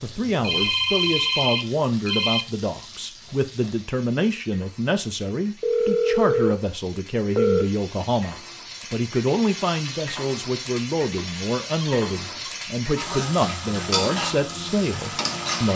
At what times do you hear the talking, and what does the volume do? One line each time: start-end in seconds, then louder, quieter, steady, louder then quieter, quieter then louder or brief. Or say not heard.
0.0-15.7 steady.